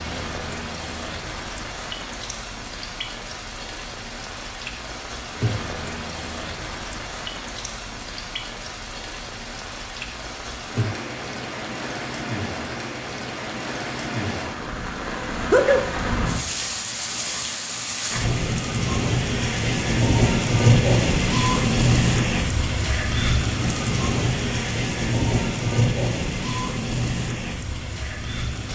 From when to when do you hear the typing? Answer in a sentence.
You can't hear the typing here.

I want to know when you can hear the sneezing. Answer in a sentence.
The sneezing can be heard from 15.4 to 15.9 s.